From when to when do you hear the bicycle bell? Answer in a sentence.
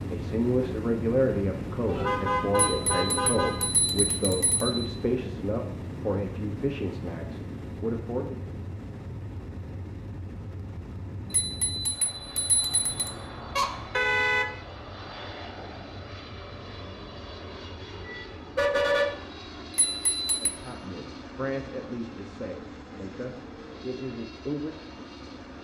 The bicycle bell can be heard from 2.5 to 4.8 s, from 11.3 to 13.2 s and from 19.8 to 20.6 s.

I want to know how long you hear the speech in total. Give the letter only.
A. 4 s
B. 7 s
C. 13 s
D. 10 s
C.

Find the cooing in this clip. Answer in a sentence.
The cooing can't be heard in this clip.